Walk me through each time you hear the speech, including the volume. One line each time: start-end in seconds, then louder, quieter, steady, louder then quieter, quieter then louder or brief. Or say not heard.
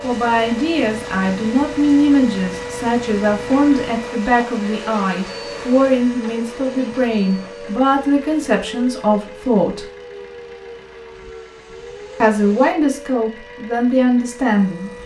0.0-9.8 steady
12.2-14.9 brief.